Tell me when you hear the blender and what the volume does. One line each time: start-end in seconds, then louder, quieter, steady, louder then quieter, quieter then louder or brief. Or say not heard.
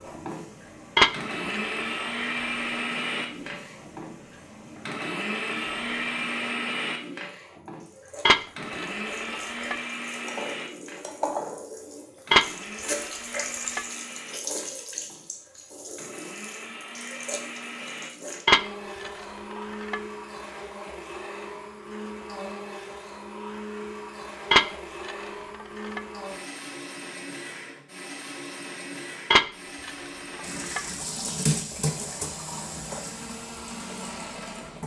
0.0-34.8 quieter.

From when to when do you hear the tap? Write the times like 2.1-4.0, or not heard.
0.0-18.4, 30.4-34.8.